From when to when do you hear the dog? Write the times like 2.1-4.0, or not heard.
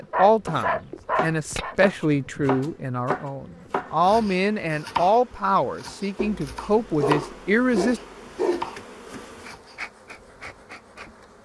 0.1-1.8, 6.2-8.7.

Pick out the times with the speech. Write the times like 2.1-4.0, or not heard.
0.0-8.0.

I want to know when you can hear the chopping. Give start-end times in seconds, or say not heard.
0.0-9.8.